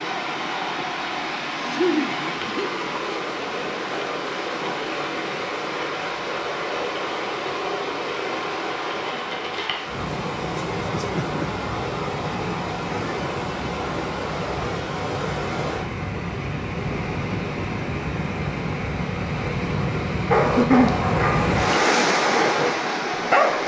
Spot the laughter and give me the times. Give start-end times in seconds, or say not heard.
1.6-2.7, 10.6-11.7, 20.4-20.9.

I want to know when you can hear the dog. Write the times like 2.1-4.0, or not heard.
20.3-23.6.